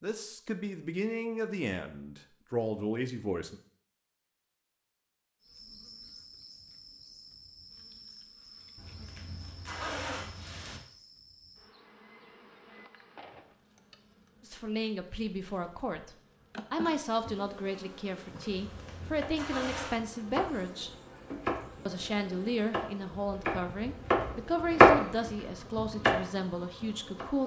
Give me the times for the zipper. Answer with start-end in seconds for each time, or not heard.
8.8-10.8, 18.5-20.1.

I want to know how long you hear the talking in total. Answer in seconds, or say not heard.
16 s.